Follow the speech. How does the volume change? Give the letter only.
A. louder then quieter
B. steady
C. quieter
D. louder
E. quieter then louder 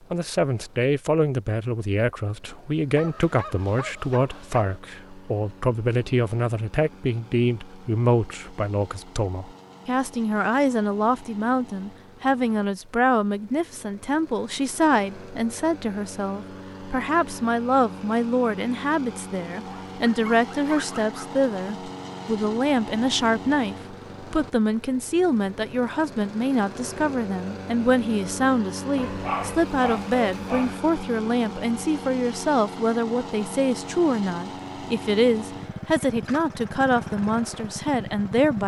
B.